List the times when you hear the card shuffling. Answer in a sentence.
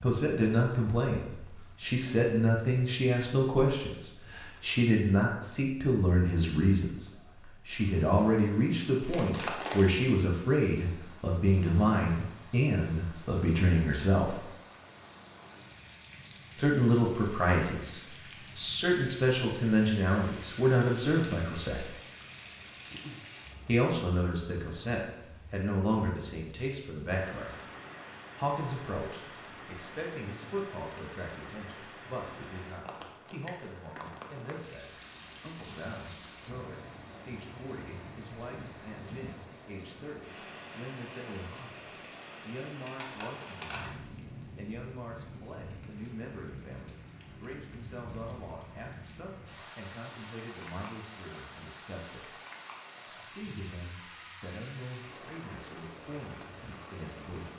The card shuffling can be heard from 9.0 to 9.9 s and from 42.9 to 43.9 s.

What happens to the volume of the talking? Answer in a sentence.
The volume of the talking goes down.